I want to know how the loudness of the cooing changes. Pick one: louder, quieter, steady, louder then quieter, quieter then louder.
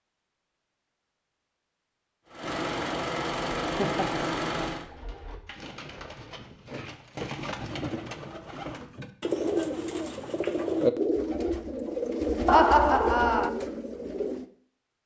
louder.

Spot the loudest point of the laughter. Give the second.
13 s.